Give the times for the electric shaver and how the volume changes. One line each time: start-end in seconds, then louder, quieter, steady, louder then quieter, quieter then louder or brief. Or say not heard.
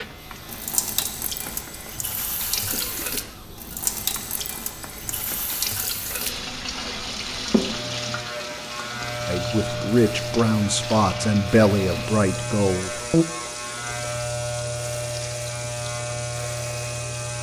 0.0-17.3 louder.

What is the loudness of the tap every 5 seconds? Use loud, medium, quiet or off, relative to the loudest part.
loud, loud, medium, medium.